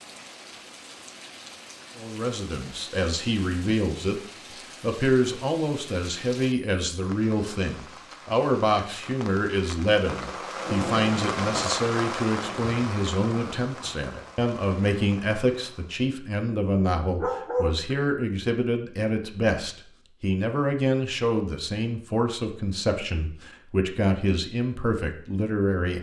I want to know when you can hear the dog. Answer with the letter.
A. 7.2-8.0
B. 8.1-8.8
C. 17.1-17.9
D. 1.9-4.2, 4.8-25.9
C.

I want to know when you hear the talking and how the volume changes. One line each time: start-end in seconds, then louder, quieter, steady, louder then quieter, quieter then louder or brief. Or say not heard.
1.9-4.2 brief
4.8-25.9 steady.